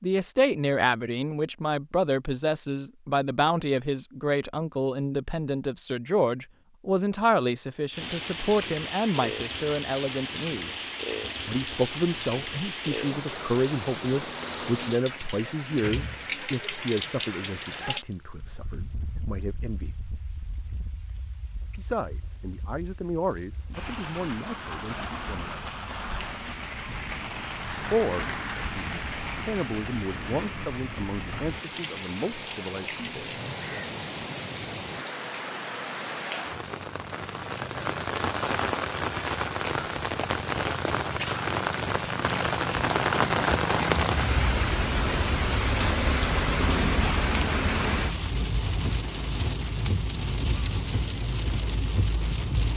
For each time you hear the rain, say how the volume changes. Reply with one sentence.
You can hear the rain from 7.9 to 52.7 s, getting quieter then louder.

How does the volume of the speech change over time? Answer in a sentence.
The volume of the speech goes down.